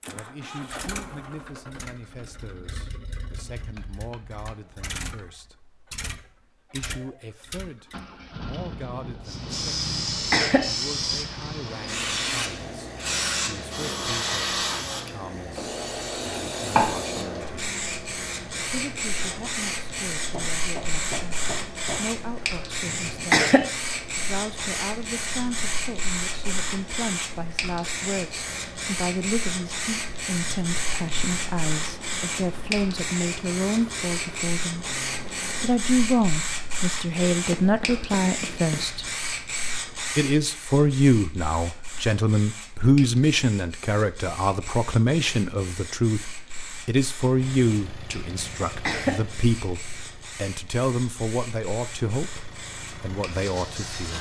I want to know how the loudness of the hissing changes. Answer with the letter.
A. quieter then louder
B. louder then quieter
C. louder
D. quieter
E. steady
D.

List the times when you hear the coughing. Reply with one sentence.
The coughing can be heard from 10.1 to 10.7 s, from 22.9 to 23.7 s and from 48.4 to 49.2 s.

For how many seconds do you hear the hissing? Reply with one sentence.
The hissing can be heard for 45 seconds in total.